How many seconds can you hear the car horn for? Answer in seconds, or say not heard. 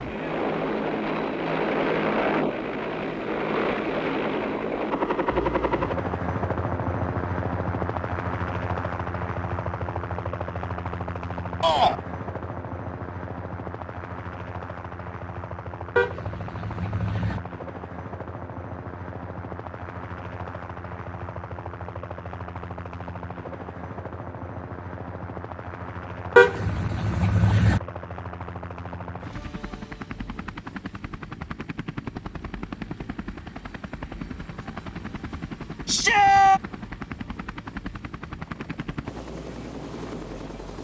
3 s.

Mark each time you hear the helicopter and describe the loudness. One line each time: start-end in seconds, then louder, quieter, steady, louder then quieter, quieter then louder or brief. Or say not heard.
0.0-40.7 quieter.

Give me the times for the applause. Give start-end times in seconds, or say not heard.
not heard.